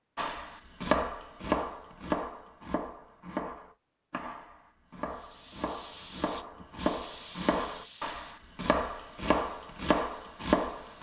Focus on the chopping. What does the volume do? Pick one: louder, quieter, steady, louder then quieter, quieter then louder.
quieter then louder.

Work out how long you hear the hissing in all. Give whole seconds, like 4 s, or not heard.
6 s.